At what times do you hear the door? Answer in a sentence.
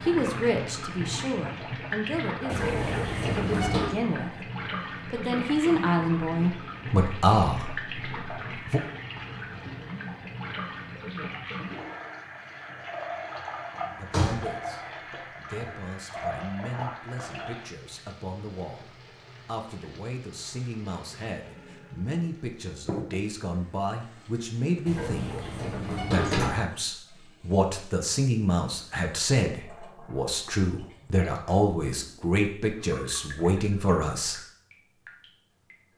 The door can be heard from 2.5 to 4.0 s, from 13.8 to 14.5 s and from 24.9 to 26.6 s.